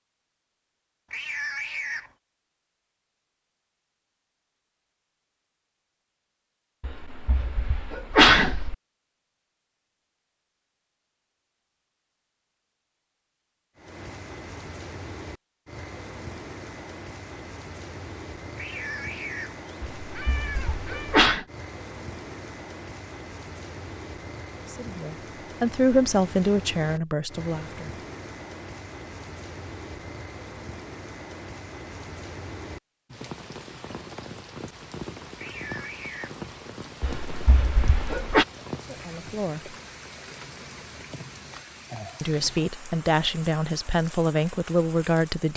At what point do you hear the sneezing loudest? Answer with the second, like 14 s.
8 s.